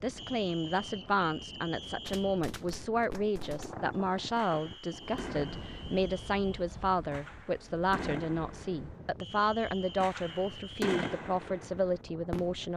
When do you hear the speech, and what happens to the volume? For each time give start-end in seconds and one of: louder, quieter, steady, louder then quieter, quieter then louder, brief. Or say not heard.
0.0-12.7 steady.